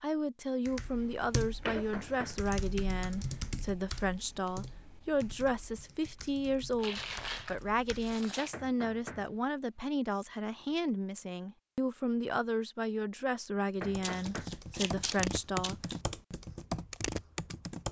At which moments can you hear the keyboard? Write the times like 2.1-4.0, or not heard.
0.7-8.2, 13.8-17.8.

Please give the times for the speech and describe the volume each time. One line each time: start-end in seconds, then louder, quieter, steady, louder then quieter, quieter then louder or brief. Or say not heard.
0.0-15.8 steady.